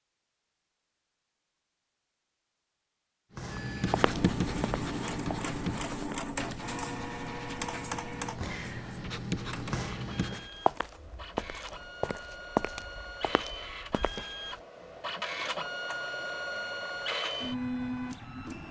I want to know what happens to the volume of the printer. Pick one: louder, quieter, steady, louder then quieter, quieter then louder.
quieter then louder.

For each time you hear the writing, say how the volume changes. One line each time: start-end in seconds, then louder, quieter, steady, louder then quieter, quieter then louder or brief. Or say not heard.
3.4-10.5 quieter then louder.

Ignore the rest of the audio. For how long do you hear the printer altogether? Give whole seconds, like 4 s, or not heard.
15 s.